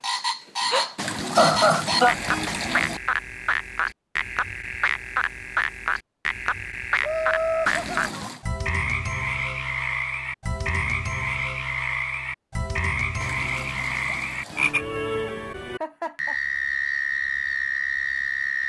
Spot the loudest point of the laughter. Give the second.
2 s.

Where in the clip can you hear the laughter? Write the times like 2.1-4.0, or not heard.
1.4-2.1, 7.0-8.2, 15.3-16.4.